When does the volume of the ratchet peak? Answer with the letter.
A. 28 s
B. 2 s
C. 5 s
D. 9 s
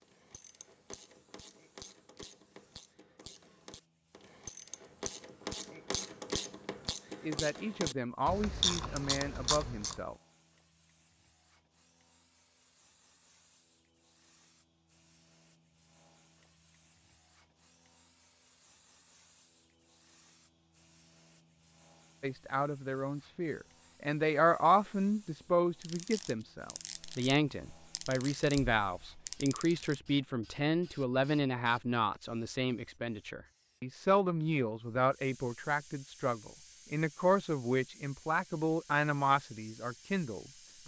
D.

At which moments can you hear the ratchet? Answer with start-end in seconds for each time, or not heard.
0.0-10.1, 25.8-29.9.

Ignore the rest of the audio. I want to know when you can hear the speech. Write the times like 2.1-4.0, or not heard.
7.2-10.2, 22.2-40.8.